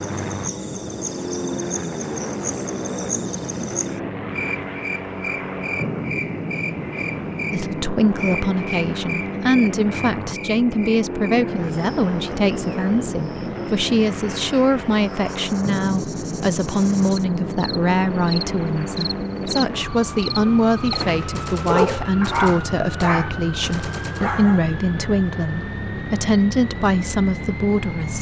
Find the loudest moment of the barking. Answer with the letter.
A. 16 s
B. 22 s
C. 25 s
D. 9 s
B.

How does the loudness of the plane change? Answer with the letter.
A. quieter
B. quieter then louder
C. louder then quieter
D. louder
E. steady
E.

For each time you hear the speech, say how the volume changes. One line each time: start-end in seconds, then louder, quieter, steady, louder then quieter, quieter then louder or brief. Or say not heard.
7.5-28.1 steady.